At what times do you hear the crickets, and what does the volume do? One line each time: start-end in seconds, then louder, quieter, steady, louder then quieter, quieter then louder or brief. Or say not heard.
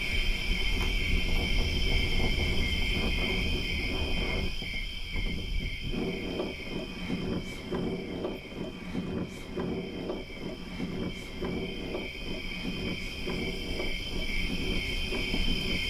0.0-15.8 quieter then louder.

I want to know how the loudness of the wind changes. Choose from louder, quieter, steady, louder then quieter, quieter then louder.
steady.